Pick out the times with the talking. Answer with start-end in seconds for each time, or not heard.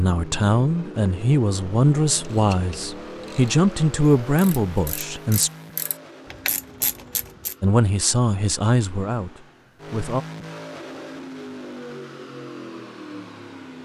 0.0-5.5, 7.6-10.2.